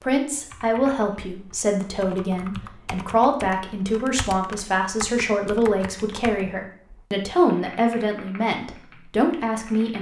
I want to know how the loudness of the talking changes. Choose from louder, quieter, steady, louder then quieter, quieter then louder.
steady.